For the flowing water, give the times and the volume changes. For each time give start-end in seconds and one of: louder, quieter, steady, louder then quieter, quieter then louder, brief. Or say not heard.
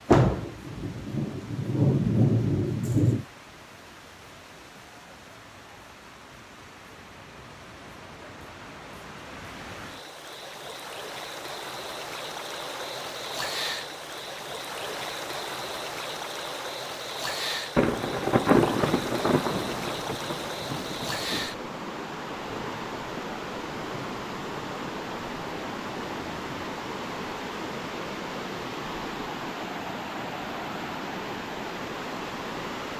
0.0-32.9 louder.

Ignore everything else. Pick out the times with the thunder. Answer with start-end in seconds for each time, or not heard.
0.1-3.2, 17.8-21.5.